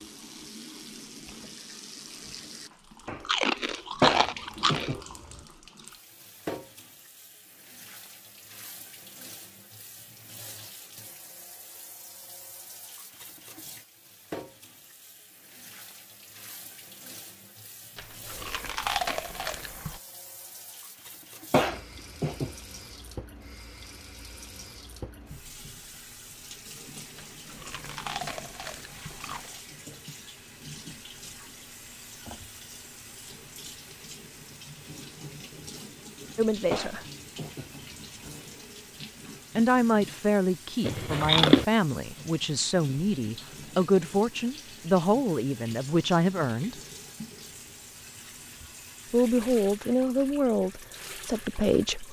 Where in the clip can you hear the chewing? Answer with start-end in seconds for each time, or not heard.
3.0-5.0, 17.9-20.0, 27.1-29.6, 40.8-41.6.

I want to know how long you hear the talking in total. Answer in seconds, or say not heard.
11 s.